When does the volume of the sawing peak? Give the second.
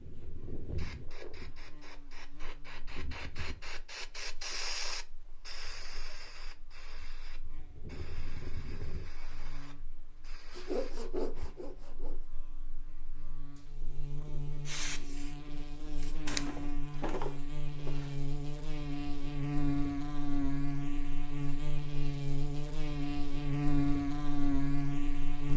11 s.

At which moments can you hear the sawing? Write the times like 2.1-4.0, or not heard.
10.6-12.2.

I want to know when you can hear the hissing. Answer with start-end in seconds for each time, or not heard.
0.0-11.4, 14.7-16.6.